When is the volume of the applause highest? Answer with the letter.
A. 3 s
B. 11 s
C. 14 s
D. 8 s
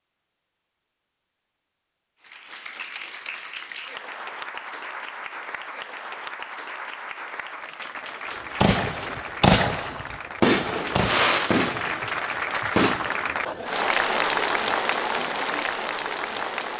C.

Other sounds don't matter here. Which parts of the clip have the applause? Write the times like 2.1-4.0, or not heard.
2.2-16.7.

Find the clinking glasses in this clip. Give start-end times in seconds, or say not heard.
not heard.